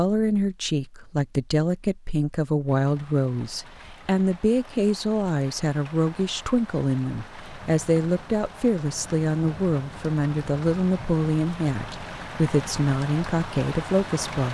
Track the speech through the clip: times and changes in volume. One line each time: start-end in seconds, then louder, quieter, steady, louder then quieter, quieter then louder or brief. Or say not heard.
0.0-14.4 steady.